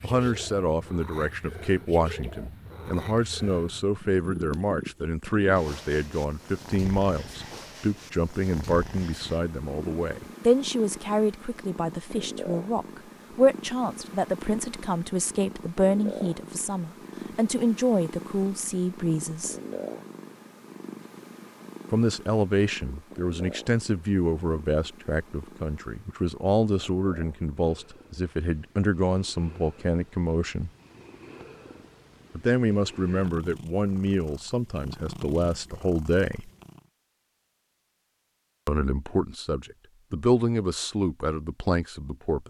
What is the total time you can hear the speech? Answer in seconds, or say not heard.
36 s.